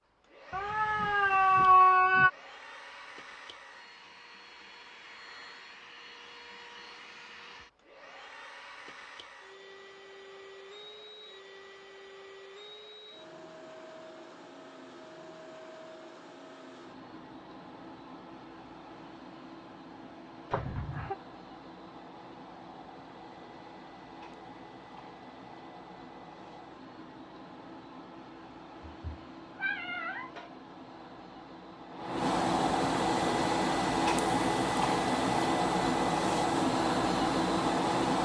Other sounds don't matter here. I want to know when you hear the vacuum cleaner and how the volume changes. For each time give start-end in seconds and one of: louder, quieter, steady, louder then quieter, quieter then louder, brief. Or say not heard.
0.0-38.1 louder.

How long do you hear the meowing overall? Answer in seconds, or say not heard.
4 s.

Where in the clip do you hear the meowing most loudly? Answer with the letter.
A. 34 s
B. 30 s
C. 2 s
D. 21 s
C.